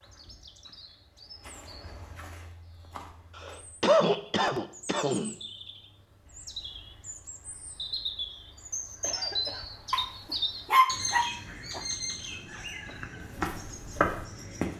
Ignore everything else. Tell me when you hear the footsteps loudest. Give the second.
14 s.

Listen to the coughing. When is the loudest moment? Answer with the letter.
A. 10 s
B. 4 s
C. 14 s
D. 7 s
B.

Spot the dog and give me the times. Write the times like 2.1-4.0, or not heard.
9.9-11.8.